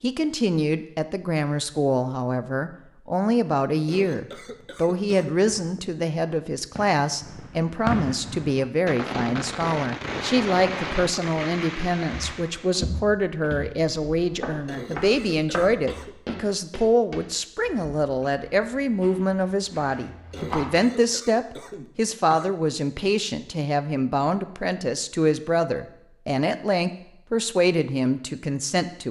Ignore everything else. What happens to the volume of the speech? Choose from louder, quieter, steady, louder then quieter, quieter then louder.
steady.